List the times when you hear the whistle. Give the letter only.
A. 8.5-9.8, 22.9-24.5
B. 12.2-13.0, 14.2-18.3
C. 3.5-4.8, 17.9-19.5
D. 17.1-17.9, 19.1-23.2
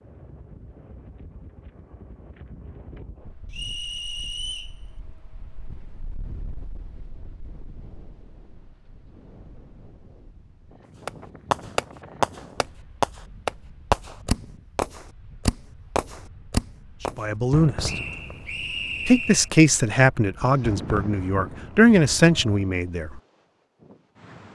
C.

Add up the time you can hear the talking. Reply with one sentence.
The talking can be heard for 5 seconds in total.